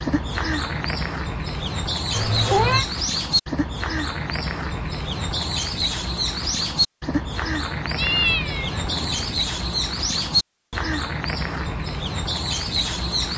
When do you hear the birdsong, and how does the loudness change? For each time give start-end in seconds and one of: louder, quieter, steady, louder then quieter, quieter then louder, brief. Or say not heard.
0.0-13.3 steady.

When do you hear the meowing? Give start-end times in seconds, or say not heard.
2.1-2.9, 8.0-9.3.